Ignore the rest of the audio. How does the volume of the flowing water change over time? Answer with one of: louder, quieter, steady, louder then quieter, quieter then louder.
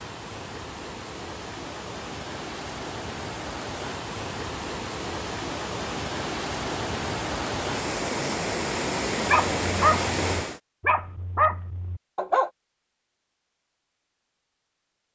louder.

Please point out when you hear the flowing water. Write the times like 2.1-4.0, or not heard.
0.0-10.6.